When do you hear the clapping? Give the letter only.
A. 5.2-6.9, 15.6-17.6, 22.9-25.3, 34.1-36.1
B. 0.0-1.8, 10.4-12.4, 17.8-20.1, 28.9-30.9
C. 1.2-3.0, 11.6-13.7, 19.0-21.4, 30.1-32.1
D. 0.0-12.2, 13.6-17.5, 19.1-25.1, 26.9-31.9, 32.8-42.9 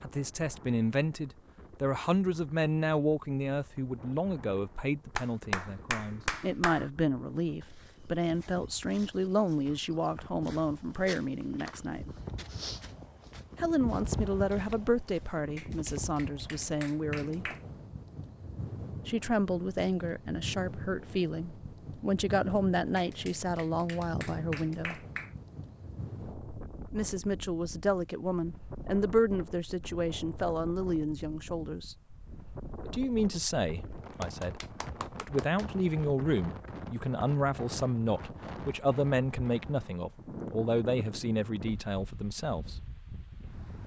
A.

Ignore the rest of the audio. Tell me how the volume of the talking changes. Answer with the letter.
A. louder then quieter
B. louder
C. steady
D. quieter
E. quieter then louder
C.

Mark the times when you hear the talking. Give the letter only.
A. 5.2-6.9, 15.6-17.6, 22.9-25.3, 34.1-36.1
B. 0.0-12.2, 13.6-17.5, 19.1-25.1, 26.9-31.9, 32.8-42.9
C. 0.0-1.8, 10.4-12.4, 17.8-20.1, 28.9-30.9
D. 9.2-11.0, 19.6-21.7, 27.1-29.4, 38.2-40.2
B.